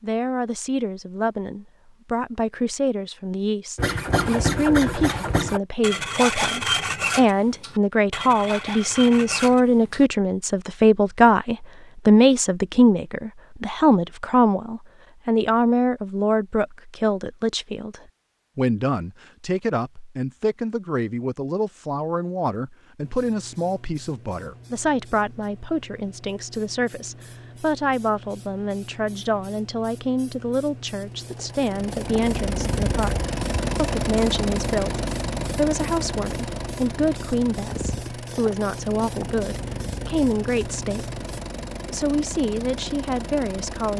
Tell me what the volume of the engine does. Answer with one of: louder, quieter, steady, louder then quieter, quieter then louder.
quieter.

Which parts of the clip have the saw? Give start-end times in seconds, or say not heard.
3.8-10.1.